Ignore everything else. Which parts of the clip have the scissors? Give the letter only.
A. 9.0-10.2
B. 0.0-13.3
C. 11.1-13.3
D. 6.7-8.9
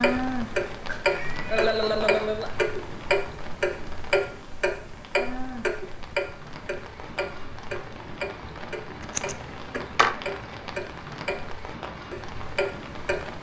A.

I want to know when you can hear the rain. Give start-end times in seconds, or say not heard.
0.0-13.3.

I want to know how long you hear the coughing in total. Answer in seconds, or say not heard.
2 s.